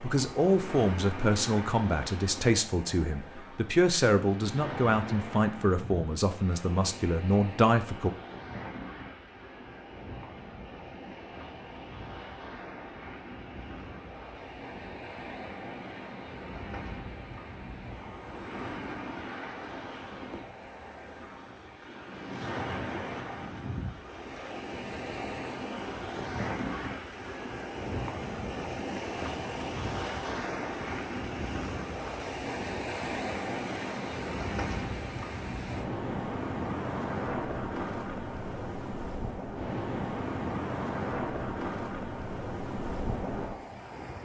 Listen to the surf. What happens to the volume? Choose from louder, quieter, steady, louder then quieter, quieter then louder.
louder.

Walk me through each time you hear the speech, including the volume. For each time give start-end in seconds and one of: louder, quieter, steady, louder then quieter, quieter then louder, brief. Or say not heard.
0.0-8.1 steady.